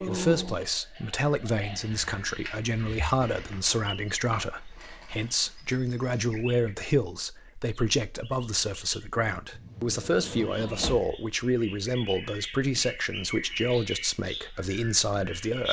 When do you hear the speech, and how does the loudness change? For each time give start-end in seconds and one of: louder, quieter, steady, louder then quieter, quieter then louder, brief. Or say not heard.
0.0-15.6 steady.